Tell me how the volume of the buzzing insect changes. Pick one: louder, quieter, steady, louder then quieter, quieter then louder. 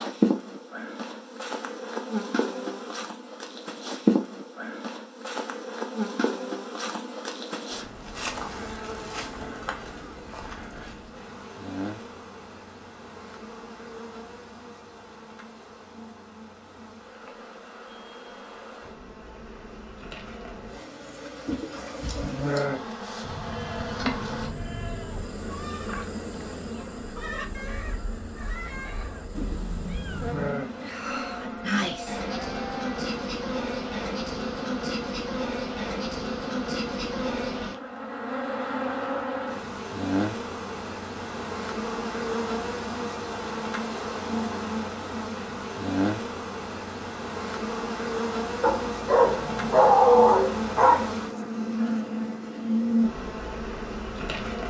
quieter then louder.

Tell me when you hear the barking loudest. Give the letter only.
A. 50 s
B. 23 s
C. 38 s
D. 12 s
A.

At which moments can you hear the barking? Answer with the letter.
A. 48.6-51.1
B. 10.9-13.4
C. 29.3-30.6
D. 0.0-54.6
A.